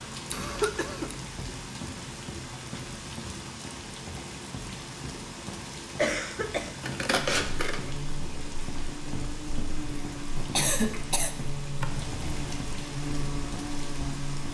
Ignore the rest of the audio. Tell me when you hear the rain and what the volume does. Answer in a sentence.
The rain can be heard from 0.0 to 14.4 s, at a steady volume.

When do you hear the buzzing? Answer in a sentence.
You can hear the buzzing from 7.2 to 14.4 s.